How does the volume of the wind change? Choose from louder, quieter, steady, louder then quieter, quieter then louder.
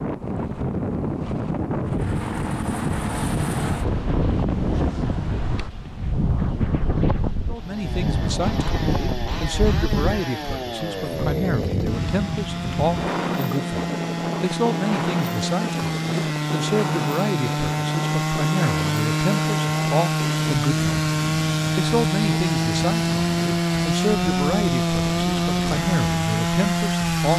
quieter.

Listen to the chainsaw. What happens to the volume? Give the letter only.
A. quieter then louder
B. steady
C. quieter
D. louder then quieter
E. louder
E.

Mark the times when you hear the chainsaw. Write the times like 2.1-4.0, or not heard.
7.5-27.3.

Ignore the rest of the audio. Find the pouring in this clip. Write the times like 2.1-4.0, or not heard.
not heard.